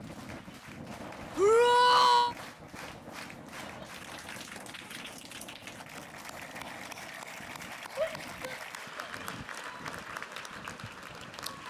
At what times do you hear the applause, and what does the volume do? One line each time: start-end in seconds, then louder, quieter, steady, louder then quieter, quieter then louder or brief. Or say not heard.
0.0-11.6 louder.